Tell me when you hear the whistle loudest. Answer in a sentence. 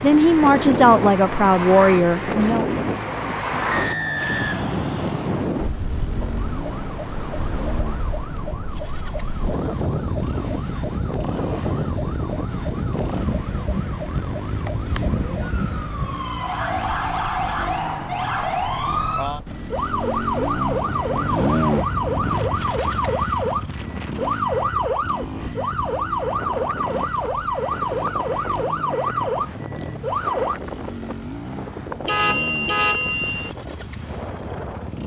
The loudest moment of the whistle is at 4 seconds.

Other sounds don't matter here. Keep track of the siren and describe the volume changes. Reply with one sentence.
The volume of the siren goes up.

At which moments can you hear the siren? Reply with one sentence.
You can hear the siren from 6.5 to 30.6 s.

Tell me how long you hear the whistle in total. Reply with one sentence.
You can hear the whistle for 2 seconds altogether.